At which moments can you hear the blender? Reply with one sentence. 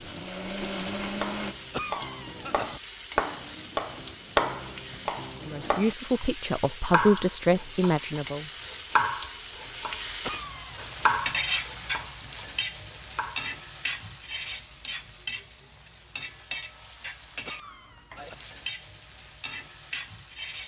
The blender can be heard from 0.0 to 1.6 s.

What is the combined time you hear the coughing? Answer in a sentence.
You can hear the coughing for 3 seconds altogether.